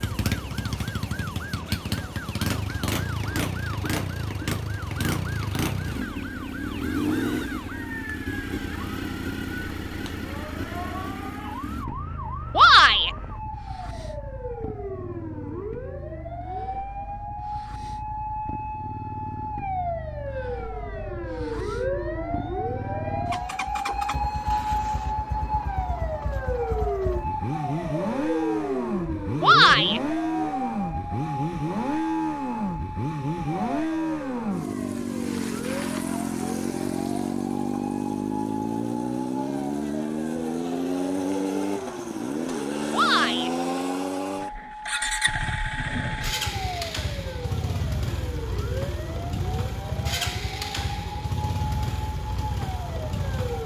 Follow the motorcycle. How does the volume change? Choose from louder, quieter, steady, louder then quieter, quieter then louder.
quieter then louder.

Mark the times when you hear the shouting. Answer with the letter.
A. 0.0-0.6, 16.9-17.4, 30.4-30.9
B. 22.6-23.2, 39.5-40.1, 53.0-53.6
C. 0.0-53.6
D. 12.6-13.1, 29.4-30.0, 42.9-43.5
D.